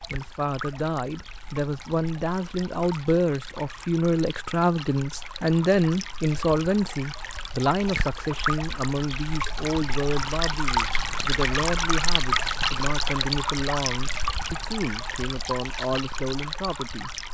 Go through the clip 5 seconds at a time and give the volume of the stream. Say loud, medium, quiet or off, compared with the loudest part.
quiet, medium, loud, medium.